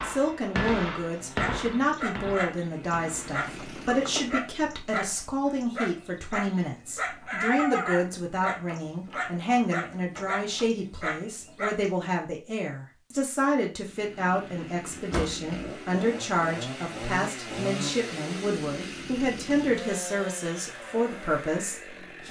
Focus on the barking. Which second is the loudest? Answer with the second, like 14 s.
8 s.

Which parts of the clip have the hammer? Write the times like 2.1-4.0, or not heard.
0.0-3.5.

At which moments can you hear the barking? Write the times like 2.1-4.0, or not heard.
1.1-11.9.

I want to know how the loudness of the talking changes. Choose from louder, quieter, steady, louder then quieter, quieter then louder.
steady.